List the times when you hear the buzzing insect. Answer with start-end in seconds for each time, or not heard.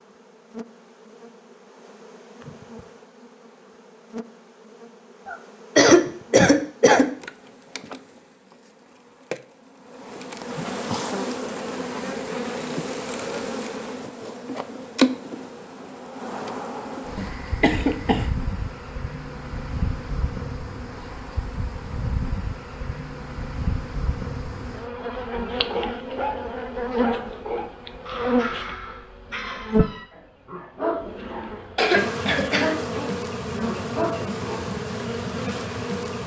0.0-29.9, 30.9-36.2.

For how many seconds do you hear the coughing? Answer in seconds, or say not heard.
4 s.